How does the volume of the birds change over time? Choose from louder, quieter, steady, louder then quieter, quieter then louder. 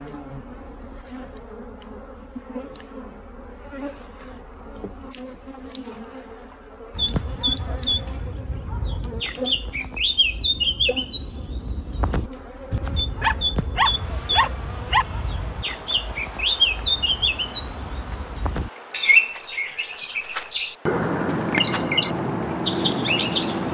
steady.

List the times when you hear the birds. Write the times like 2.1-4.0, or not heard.
7.0-23.7.